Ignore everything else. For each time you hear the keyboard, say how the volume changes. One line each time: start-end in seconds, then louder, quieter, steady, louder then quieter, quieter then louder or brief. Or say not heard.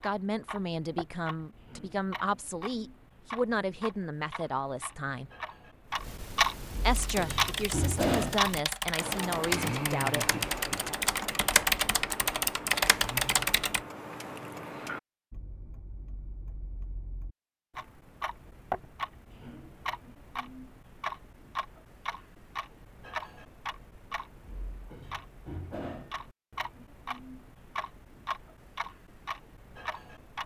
7.0-13.8 louder.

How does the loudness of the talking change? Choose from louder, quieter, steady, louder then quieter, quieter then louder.
steady.